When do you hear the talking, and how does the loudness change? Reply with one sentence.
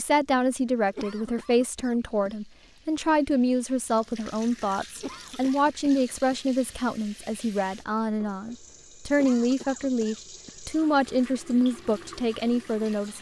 You can hear the talking from 0.0 to 13.1 s, at a steady volume.